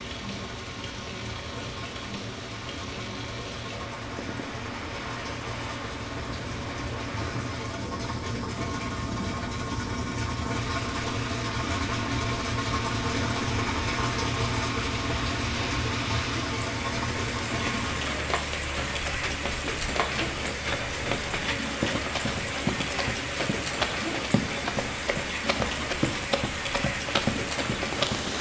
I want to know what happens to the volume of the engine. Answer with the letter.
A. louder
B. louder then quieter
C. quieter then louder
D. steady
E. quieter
B.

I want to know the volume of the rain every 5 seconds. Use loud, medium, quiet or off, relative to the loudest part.
medium, medium, medium, loud, loud, loud.